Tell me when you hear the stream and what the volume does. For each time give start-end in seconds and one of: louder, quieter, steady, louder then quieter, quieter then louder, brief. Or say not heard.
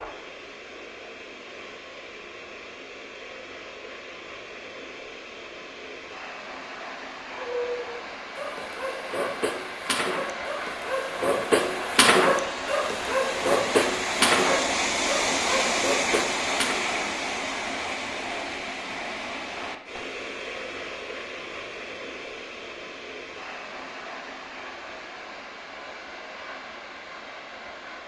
0.0-28.0 louder then quieter.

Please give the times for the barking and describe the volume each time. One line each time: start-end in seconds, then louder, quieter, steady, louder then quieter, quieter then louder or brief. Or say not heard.
7.3-16.9 louder then quieter.